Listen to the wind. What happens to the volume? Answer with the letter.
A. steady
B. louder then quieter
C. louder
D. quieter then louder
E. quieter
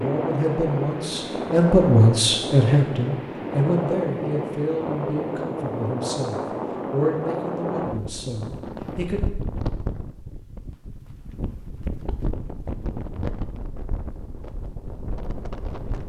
E.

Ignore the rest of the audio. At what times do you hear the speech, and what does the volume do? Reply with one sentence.
The speech can be heard from 0.0 to 9.2 s, getting quieter.